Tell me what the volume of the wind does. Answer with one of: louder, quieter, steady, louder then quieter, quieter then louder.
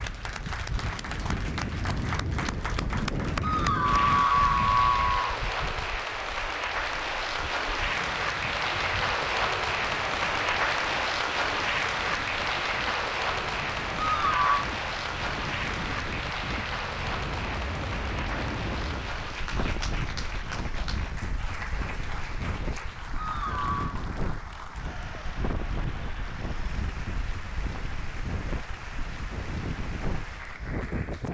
quieter then louder.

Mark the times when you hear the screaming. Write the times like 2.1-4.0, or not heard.
3.4-5.2, 14.0-14.7, 23.1-23.9.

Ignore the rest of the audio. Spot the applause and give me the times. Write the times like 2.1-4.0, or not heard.
0.0-31.2.